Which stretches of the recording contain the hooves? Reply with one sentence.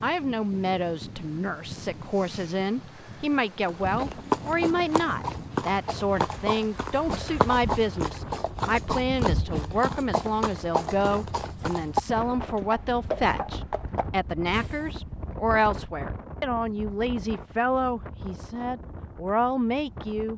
You can hear the hooves from 3.6 to 14.9 s.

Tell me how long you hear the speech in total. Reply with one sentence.
You can hear the speech for 20 seconds altogether.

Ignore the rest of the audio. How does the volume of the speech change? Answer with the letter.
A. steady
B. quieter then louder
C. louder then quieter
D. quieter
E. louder
A.